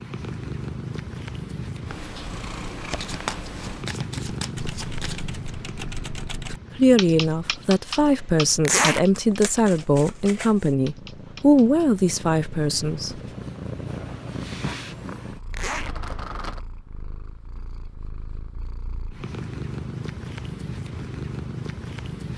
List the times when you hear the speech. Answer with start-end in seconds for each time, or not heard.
6.8-13.2.